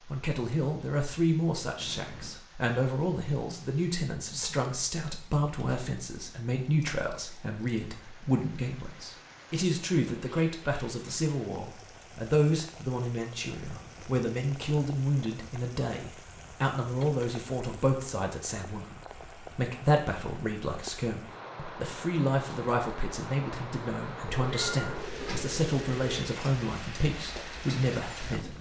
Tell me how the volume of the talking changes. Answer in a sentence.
The loudness of the talking stays about the same.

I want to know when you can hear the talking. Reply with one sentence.
The talking can be heard from 0.1 to 28.5 s.